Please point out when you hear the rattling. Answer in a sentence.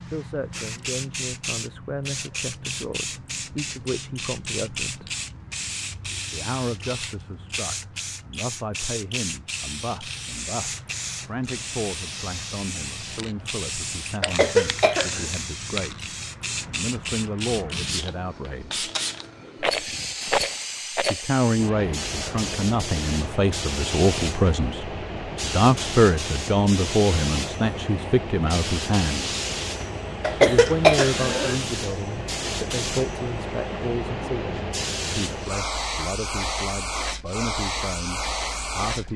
The rattling can be heard from 19.6 to 21.2 s.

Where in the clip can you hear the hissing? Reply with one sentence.
You can hear the hissing from 0.0 to 39.1 s.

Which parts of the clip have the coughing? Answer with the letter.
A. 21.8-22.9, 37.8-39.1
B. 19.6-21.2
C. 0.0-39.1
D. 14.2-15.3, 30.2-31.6
D.